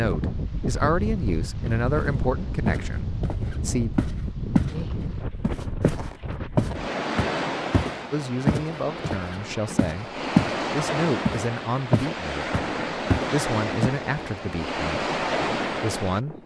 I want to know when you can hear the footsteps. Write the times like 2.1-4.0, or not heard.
1.9-4.8, 5.4-10.6, 11.2-13.9.